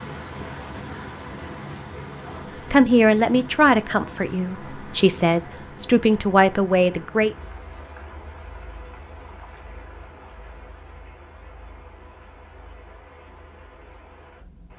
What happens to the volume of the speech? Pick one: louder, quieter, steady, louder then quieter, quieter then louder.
quieter then louder.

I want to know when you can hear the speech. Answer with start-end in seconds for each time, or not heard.
2.7-7.3.